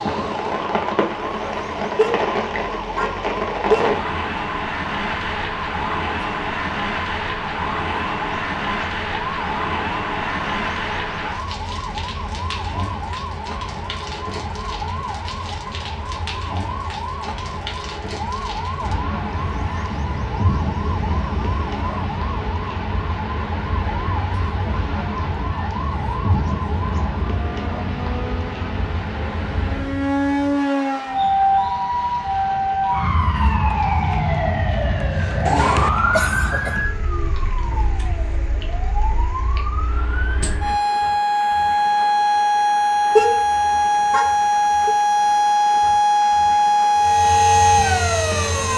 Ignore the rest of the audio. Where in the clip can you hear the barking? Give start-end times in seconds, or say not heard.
not heard.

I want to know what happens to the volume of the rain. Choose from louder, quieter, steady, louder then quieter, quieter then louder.
quieter.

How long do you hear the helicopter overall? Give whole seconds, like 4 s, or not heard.
2 s.